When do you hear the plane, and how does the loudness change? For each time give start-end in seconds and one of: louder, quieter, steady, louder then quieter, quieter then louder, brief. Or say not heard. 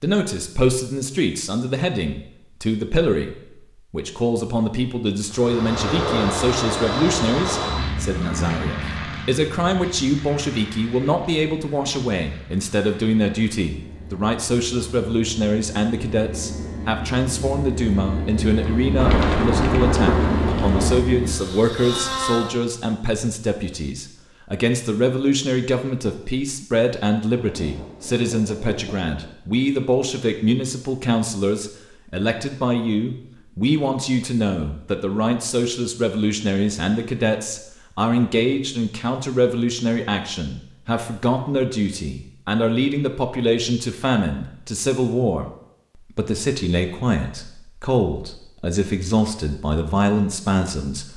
5.3-22.6 quieter then louder.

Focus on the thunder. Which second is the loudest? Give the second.
20 s.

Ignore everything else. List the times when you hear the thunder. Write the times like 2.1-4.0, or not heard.
18.9-21.0, 27.3-29.4.